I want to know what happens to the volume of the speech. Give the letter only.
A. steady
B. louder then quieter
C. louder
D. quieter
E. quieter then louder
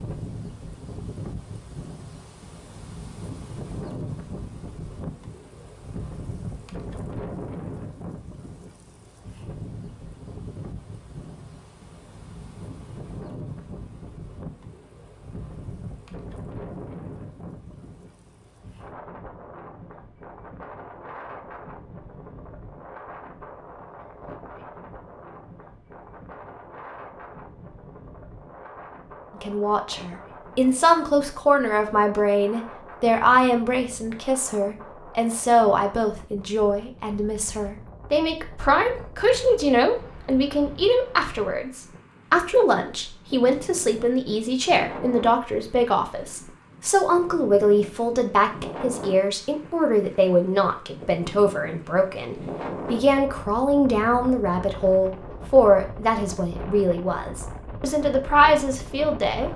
A.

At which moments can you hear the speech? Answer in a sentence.
The speech can be heard from 29.4 to 59.5 s.